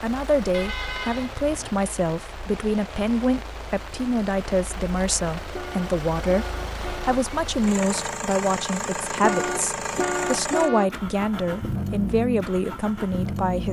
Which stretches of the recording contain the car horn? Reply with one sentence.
The car horn can be heard from 0.5 to 1.8 s, from 5.5 to 7.2 s and from 9.2 to 10.9 s.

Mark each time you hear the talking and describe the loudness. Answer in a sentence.
You can hear the talking from 0.0 to 13.6 s, at a steady volume.